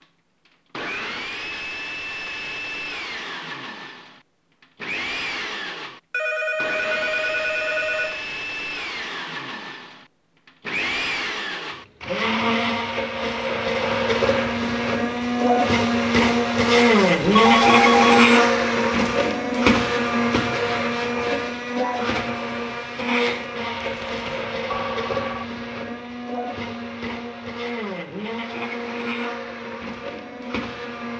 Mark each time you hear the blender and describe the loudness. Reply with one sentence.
The blender can be heard from 0.0 to 31.1 s, getting louder then quieter.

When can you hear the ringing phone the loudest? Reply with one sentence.
The loudest moment of the ringing phone is at 18 seconds.